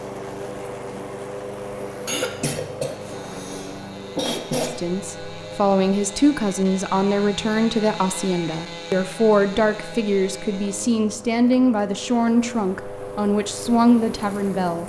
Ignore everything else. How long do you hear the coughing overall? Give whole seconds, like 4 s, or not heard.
3 s.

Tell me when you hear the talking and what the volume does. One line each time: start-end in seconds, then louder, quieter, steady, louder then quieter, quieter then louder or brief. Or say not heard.
4.8-14.8 steady.